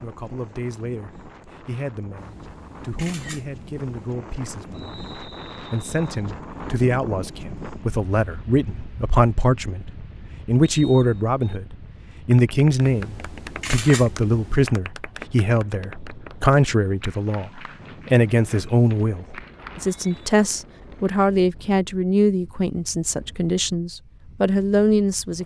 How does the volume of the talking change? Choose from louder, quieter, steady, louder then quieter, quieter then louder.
louder.